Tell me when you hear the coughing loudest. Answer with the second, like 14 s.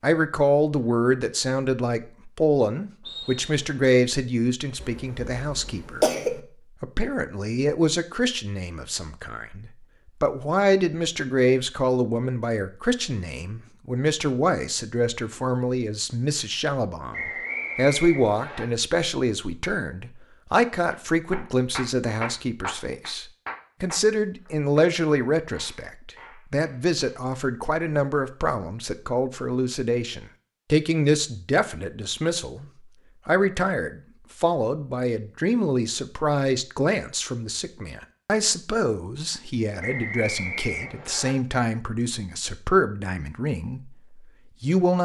6 s.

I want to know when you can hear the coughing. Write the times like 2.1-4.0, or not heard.
4.8-6.4.